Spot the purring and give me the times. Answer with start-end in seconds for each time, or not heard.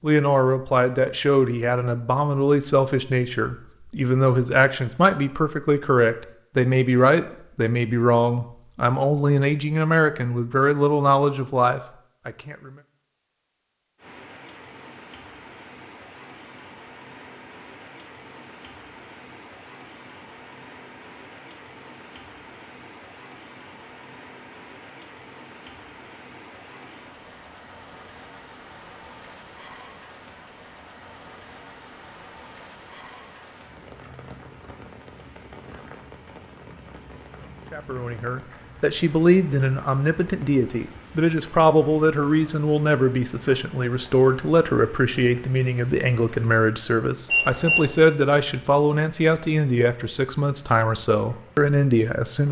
not heard.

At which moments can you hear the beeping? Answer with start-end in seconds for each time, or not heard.
47.3-47.9.